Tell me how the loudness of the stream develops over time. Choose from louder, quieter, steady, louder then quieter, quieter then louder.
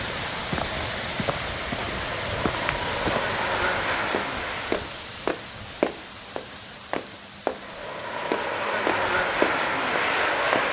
quieter.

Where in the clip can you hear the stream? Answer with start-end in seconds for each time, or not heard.
0.0-10.6.